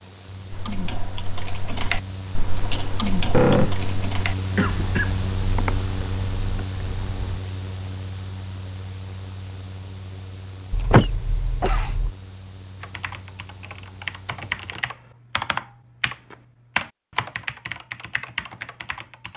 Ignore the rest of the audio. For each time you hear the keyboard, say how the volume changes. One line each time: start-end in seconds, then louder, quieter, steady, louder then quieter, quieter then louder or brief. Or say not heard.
0.5-7.4 quieter
12.8-19.3 louder then quieter.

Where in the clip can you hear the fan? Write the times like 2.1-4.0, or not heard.
0.0-14.8.